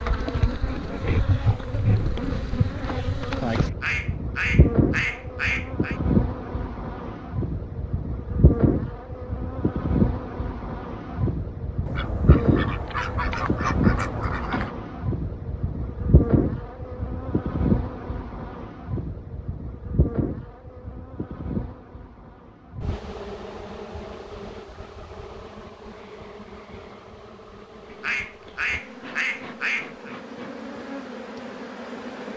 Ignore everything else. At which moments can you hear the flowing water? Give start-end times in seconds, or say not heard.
not heard.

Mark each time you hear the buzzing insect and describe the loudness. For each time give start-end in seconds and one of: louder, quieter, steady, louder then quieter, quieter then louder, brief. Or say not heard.
0.0-32.3 quieter.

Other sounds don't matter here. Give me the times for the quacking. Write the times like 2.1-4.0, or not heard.
3.8-6.0, 11.8-14.8, 27.9-30.1.